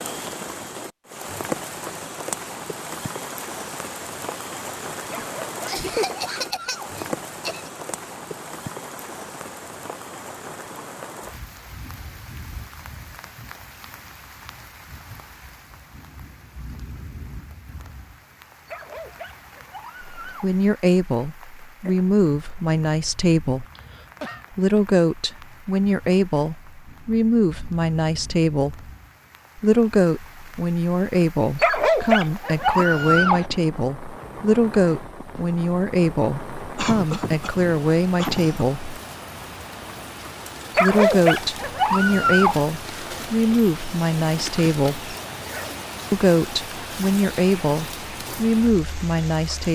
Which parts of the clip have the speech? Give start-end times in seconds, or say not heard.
20.2-23.6, 24.5-28.9, 29.6-39.0, 40.8-45.1, 46.1-49.6.